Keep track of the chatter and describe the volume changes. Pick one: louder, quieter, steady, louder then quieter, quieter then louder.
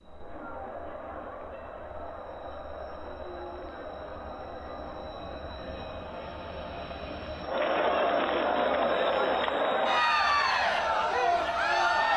louder.